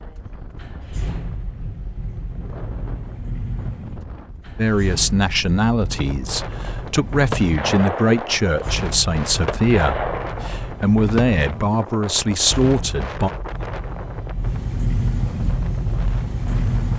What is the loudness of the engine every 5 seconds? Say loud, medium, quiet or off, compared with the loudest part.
medium, medium, medium, loud.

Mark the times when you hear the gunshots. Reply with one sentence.
The gunshots can be heard from 6.8 to 8.4 s and from 9.4 to 11.6 s.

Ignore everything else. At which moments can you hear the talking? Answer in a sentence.
You can hear the talking from 4.5 to 13.3 s.